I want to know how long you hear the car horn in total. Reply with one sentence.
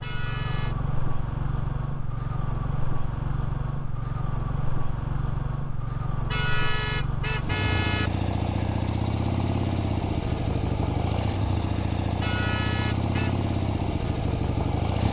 You can hear the car horn for 4 seconds altogether.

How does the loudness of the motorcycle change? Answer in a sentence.
The loudness of the motorcycle stays about the same.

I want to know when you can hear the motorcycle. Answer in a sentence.
The motorcycle can be heard from 0.0 to 15.0 s.